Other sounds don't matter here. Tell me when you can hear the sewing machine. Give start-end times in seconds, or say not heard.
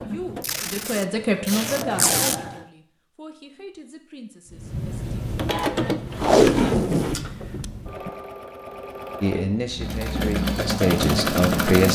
0.0-2.7, 4.5-11.9.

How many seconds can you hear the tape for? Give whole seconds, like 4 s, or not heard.
4 s.